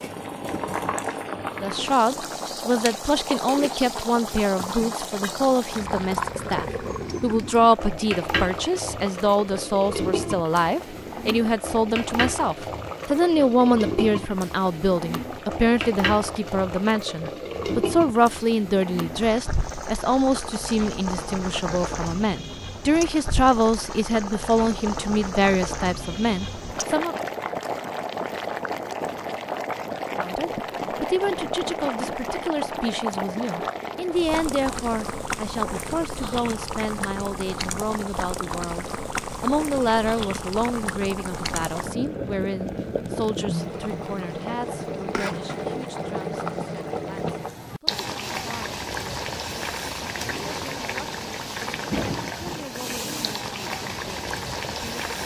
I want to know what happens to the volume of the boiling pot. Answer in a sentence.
The loudness of the boiling pot stays about the same.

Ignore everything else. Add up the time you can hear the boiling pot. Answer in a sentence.
The boiling pot can be heard for 55 seconds in total.